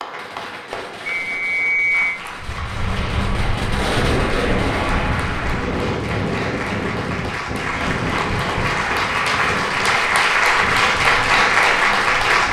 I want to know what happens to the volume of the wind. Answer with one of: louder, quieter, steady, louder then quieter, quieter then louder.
quieter.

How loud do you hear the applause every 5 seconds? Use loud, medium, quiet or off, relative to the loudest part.
quiet, medium, loud.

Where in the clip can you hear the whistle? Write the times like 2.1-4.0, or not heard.
1.1-2.1.